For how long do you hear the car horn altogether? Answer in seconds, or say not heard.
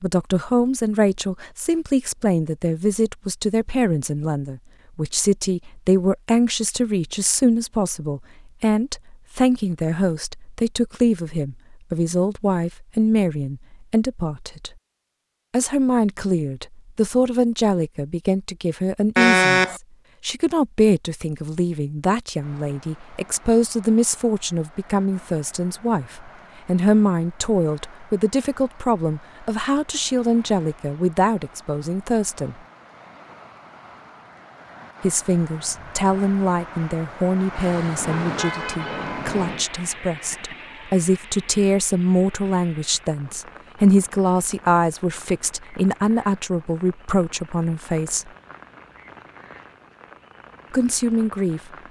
3 s.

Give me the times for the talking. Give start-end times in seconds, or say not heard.
0.0-14.7, 15.5-32.5, 35.0-48.3, 50.7-51.6.